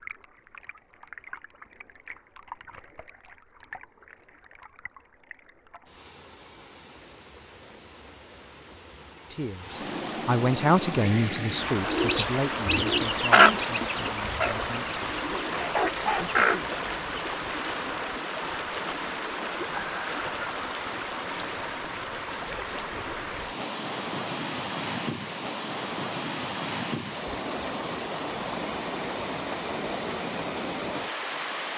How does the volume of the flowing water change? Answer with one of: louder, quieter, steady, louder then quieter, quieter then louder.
louder.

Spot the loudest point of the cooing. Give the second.
13 s.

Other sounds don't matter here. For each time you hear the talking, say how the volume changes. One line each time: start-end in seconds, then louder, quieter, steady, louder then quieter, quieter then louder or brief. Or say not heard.
9.3-15.0 quieter
16.1-16.6 brief.